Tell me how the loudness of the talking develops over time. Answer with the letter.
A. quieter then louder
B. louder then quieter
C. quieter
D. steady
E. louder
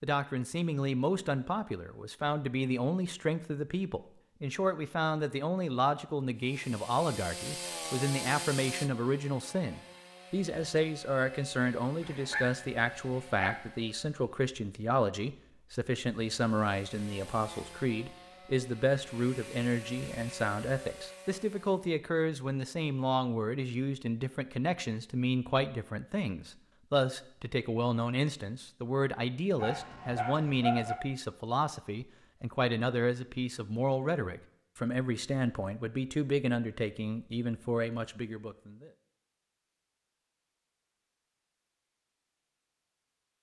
D.